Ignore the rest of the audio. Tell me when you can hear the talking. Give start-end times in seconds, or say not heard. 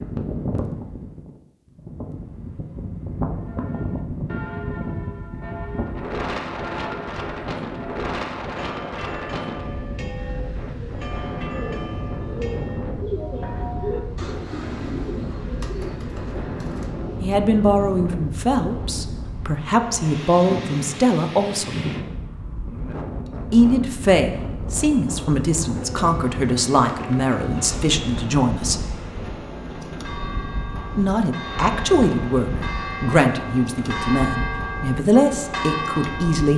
17.2-21.8, 23.5-28.9, 30.9-36.5.